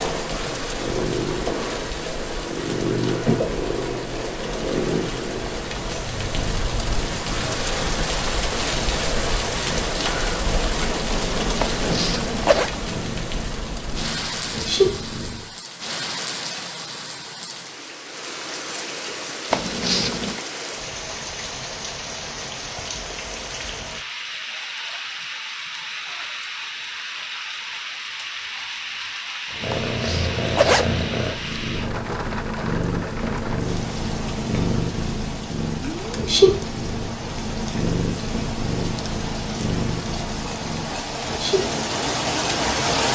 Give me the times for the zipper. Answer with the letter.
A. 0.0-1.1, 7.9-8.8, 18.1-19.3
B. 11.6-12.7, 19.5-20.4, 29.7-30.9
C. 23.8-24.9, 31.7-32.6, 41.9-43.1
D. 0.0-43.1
B.